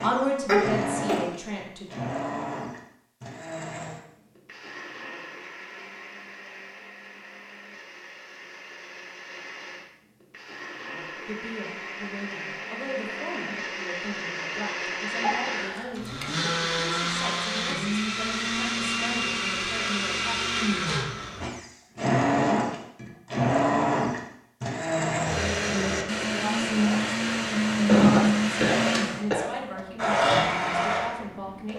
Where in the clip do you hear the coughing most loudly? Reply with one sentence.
The loudest moment of the coughing is at 28 seconds.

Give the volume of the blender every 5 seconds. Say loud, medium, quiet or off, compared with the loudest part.
medium, quiet, medium, loud, loud, loud, loud.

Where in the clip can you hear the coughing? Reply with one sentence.
The coughing can be heard from 0.5 to 1.2 s, from 15.2 to 16.2 s and from 27.7 to 29.5 s.